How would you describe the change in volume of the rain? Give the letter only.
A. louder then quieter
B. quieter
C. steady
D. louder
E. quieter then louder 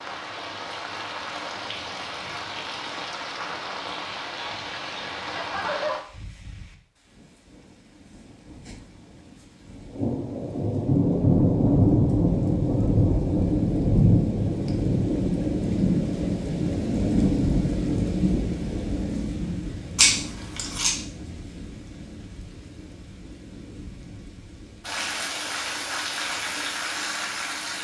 A.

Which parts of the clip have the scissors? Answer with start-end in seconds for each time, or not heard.
19.9-20.9.